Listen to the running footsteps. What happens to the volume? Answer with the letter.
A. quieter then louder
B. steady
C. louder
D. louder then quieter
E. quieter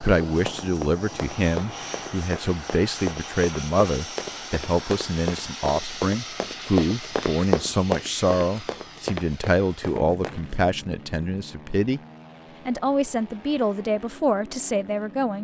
D.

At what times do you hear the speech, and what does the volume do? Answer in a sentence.
The speech can be heard from 0.0 to 12.0 s, at a steady volume; and briefly from 12.7 to 15.3 s.